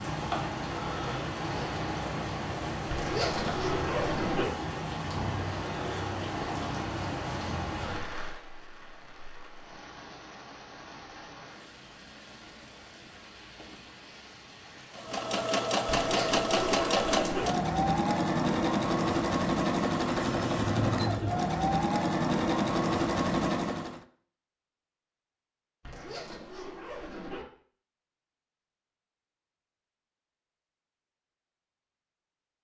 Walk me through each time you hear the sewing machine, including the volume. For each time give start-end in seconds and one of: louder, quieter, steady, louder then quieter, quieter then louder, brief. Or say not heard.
14.9-24.1 steady.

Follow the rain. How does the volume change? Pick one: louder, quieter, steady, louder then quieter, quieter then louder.
quieter.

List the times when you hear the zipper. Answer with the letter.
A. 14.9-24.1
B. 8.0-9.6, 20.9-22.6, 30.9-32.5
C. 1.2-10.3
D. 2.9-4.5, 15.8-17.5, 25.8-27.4
D.